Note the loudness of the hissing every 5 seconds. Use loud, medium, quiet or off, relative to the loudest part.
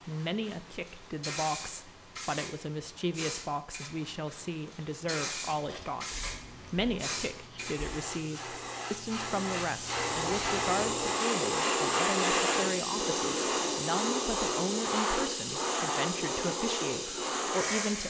quiet, medium, loud, loud.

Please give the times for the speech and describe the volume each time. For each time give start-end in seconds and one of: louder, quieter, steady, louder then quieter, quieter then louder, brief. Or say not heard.
0.1-18.0 steady.